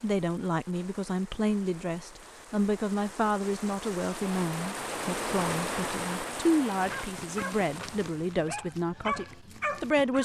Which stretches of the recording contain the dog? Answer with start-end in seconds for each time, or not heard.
6.7-10.2.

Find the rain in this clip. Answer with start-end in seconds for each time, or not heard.
0.0-8.5.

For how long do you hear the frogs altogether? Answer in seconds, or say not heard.
not heard.